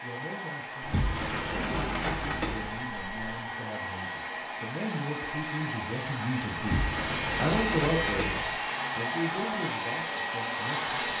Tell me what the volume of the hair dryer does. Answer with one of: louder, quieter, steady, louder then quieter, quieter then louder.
louder.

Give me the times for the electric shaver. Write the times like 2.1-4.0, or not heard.
6.8-9.2.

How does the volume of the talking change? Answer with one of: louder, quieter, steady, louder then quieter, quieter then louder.
louder then quieter.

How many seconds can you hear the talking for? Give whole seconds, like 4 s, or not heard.
11 s.